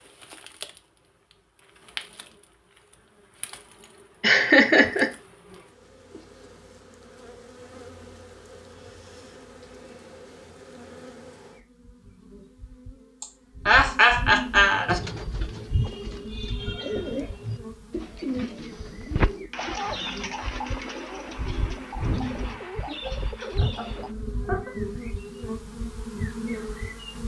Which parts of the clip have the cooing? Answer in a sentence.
The cooing can be heard from 14.7 to 24.1 s.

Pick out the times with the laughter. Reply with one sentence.
You can hear the laughter from 4.2 to 5.1 s, from 13.2 to 15.0 s and from 22.0 to 24.7 s.